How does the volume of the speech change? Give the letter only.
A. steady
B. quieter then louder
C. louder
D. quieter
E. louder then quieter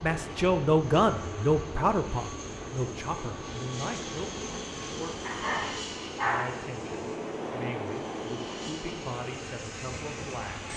D.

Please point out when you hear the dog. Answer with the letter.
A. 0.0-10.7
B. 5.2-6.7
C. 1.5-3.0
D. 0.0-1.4
B.